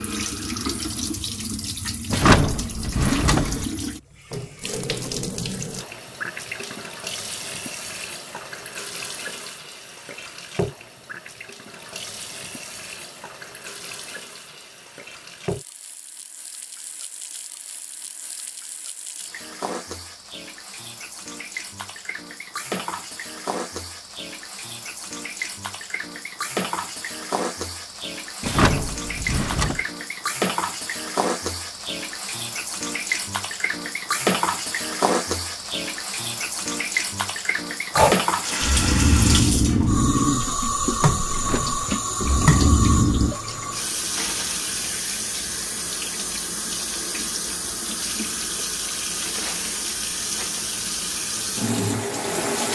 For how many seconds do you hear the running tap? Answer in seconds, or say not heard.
53 s.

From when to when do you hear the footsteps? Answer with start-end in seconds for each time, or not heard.
not heard.